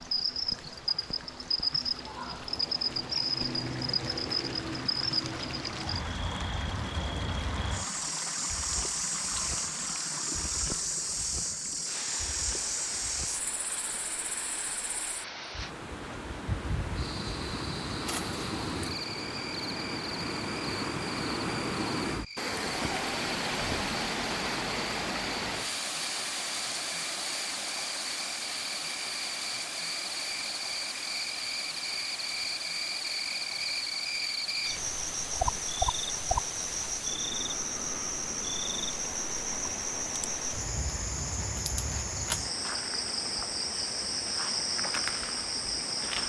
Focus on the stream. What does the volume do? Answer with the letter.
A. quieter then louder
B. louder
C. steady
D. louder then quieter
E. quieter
D.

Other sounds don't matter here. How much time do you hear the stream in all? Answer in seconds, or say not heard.
46 s.